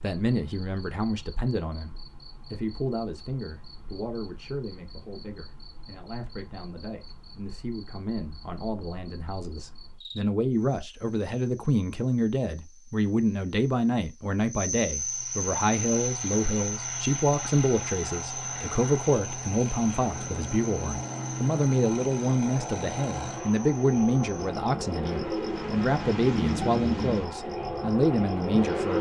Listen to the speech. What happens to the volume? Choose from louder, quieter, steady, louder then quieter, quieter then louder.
louder.